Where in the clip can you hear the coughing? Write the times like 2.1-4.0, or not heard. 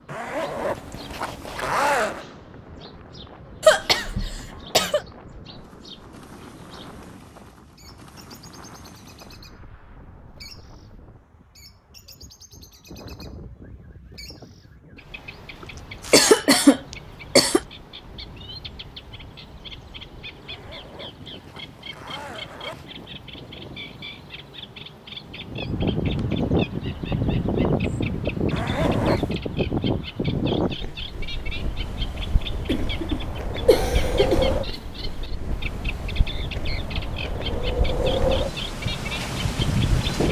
3.6-5.0, 16.1-17.6, 32.6-34.5.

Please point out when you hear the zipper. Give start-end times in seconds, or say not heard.
0.1-2.2, 20.4-23.1, 28.5-29.4.